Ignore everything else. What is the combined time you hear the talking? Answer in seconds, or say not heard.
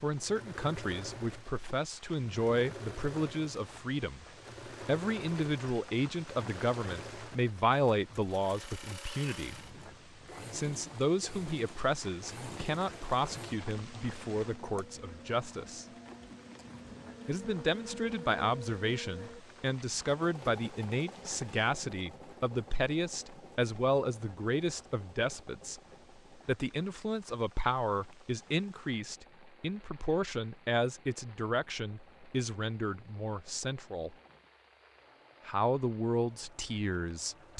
33 s.